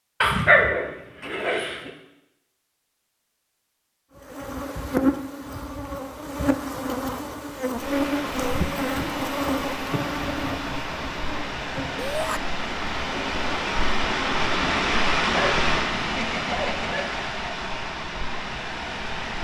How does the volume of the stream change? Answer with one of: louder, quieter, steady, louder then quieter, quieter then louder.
louder then quieter.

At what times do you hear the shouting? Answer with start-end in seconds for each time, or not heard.
11.9-12.4.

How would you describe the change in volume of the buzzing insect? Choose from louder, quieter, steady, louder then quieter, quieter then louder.
quieter.